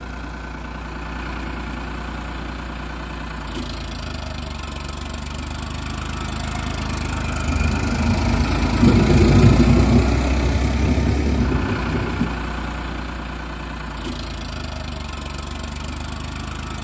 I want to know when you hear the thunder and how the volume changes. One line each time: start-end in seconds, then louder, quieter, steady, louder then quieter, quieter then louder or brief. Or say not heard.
7.5-12.3 louder then quieter.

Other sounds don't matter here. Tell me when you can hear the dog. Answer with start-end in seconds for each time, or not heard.
not heard.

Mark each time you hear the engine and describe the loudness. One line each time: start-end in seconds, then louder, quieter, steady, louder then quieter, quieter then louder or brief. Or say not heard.
0.0-16.7 louder then quieter.